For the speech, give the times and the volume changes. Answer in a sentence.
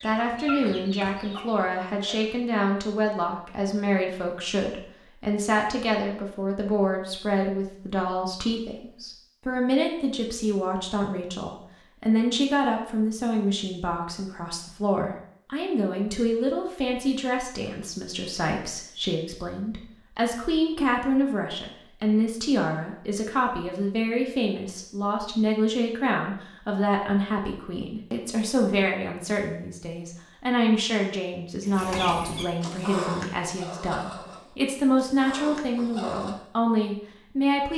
The speech can be heard from 0.0 to 37.7 s, at a steady volume.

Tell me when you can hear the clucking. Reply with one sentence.
The clucking can be heard from 0.0 to 2.4 s and from 31.6 to 36.4 s.